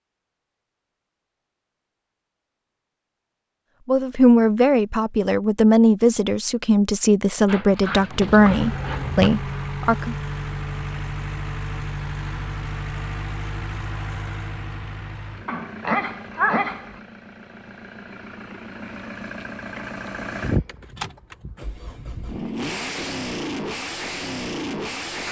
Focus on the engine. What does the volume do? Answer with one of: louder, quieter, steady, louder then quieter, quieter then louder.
quieter then louder.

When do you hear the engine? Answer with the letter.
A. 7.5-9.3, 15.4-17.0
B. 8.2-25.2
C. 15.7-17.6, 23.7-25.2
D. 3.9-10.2
B.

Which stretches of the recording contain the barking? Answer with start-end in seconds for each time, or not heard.
7.5-9.3, 15.4-17.0.